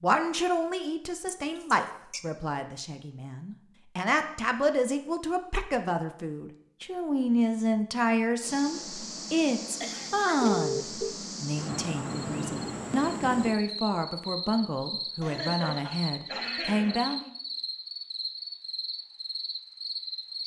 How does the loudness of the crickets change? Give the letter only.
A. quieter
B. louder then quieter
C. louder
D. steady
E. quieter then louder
D.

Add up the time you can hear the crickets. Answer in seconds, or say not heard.
12 s.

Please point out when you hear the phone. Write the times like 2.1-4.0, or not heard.
10.4-11.2.